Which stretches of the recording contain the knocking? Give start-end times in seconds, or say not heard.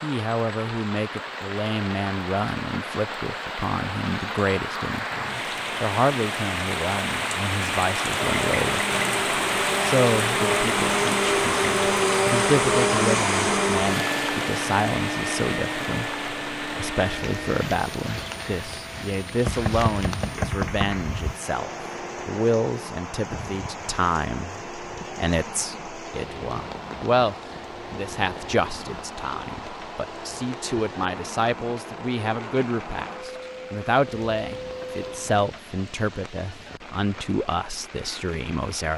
19.4-21.4.